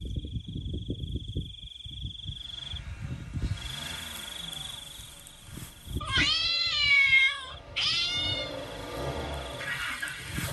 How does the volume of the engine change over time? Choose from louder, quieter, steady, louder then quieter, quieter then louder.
quieter then louder.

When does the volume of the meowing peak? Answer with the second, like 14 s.
7 s.